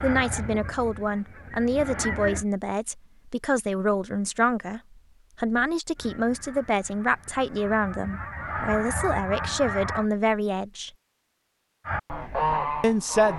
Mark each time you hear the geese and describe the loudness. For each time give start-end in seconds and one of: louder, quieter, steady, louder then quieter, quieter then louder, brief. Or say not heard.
0.0-2.5 brief
6.0-10.1 louder
11.8-13.3 brief.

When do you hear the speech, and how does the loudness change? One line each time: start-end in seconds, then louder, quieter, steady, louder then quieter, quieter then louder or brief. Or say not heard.
0.0-10.9 steady
12.8-13.3 brief.